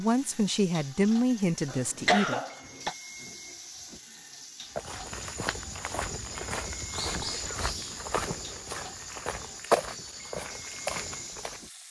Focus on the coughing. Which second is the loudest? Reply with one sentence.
The loudest moment of the coughing is at 2 seconds.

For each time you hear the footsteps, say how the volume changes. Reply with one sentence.
The footsteps can be heard from 4.7 to 11.6 s, getting louder then quieter.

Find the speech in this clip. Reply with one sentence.
The speech can be heard from 0.0 to 2.4 s.